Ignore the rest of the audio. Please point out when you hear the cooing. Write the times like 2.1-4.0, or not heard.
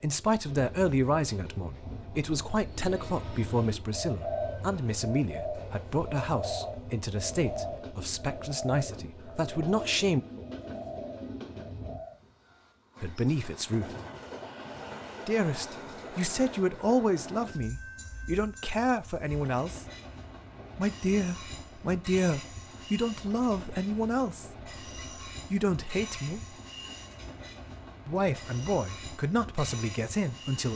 2.6-12.2.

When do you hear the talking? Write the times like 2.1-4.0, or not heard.
0.0-10.2, 13.0-13.9, 15.2-19.9, 20.8-24.6, 25.5-26.4, 28.1-30.7.